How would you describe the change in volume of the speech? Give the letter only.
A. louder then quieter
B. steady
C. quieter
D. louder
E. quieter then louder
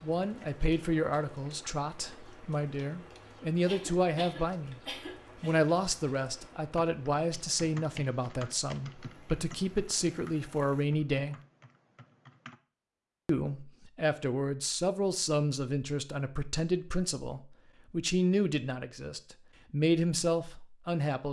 B.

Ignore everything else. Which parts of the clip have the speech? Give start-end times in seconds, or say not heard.
0.0-4.8, 5.4-11.3, 13.2-21.2.